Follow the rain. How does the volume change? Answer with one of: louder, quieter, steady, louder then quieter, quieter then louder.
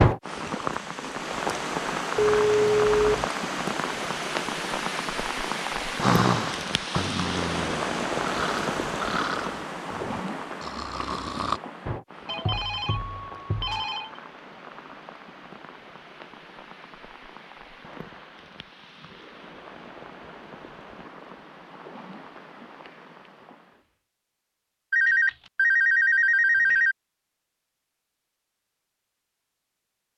quieter.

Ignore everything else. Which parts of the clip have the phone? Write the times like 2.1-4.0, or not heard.
2.1-3.2, 12.2-14.1, 24.9-26.9.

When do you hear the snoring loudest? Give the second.
6 s.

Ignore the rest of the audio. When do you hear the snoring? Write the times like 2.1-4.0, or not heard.
6.0-11.6.